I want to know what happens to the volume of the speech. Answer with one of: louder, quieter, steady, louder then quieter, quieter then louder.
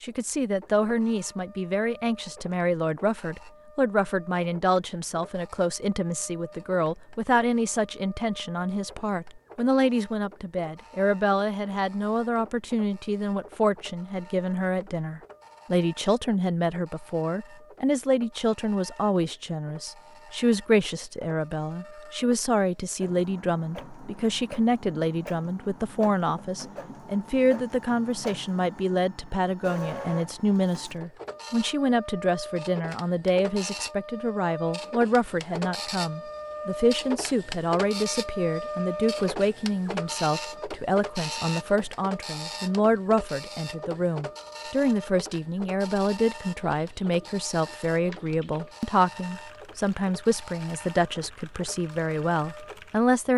steady.